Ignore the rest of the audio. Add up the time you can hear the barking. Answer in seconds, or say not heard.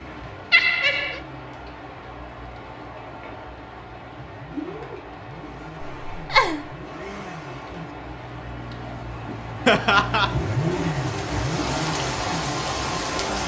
not heard.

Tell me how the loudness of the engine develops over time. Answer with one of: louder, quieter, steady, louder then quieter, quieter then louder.
louder.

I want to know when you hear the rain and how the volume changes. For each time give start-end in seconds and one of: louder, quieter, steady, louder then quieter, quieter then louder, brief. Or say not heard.
0.0-13.4 louder.